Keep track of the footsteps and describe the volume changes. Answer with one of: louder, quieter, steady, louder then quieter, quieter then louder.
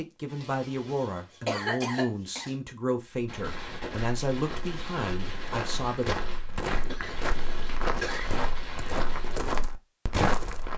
louder.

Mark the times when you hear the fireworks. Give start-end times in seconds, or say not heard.
3.2-9.4.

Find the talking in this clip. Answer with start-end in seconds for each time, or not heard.
0.0-6.0.